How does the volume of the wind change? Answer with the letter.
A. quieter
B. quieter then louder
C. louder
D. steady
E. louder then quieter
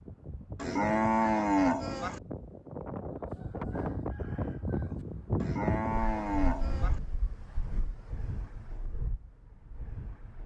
E.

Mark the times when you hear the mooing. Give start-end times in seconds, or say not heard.
0.6-2.2, 5.4-7.0.